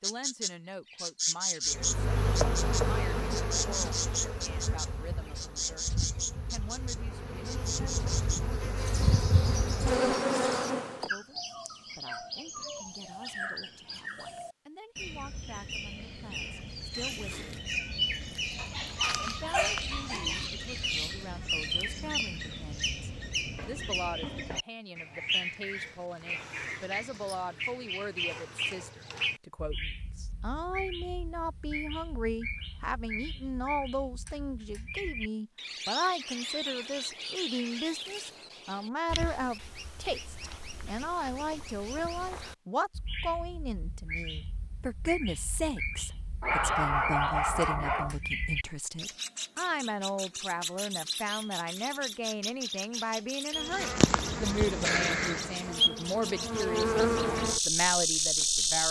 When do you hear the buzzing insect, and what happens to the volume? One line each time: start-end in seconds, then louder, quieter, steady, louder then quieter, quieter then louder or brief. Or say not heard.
1.6-11.1 quieter then louder
53.5-58.8 quieter then louder.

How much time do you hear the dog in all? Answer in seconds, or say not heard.
4 s.